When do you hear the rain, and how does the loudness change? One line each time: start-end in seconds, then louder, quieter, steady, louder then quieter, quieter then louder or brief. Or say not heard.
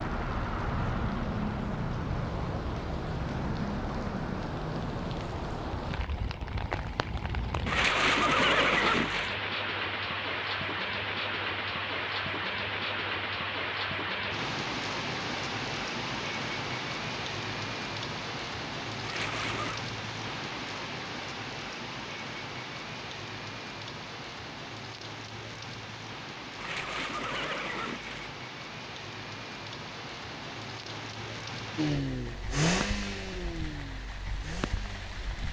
0.0-35.4 quieter.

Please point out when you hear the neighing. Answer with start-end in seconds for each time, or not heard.
7.7-9.3, 19.0-19.9, 26.6-28.4.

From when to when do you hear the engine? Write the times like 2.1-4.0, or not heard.
31.8-35.4.